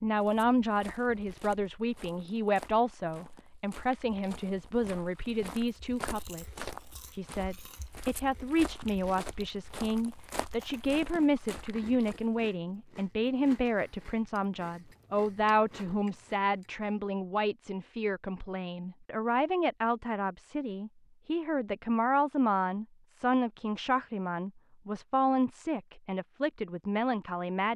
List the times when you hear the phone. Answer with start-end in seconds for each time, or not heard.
not heard.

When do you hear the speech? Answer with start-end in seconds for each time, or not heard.
0.0-27.7.